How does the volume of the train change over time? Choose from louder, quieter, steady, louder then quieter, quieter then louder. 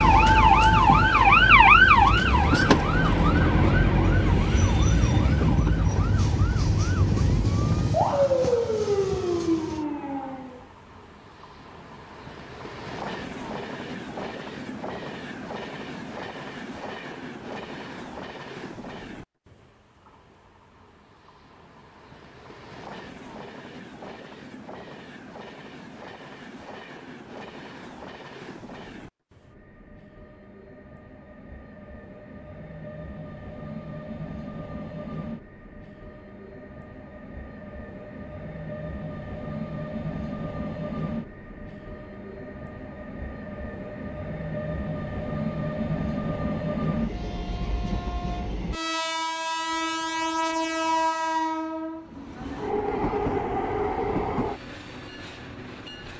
quieter then louder.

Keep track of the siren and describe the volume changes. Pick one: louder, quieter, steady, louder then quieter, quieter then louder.
quieter.